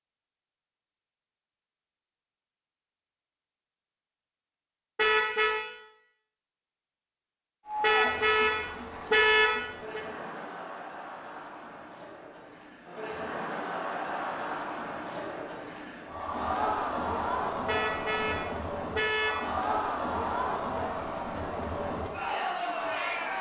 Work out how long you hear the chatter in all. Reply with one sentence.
The chatter can be heard for 16 seconds in total.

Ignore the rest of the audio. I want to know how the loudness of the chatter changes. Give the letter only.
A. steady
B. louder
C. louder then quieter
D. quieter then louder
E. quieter
B.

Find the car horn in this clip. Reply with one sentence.
The car horn can be heard from 5.0 to 5.6 s, from 7.8 to 10.0 s and from 17.6 to 19.5 s.